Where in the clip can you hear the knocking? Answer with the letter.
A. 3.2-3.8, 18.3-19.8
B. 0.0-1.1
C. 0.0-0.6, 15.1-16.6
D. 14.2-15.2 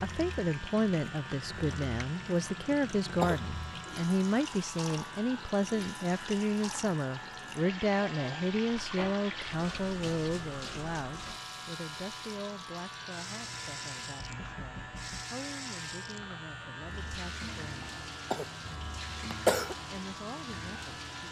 D.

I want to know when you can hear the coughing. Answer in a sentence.
You can hear the coughing from 3.2 to 3.8 s and from 18.3 to 19.8 s.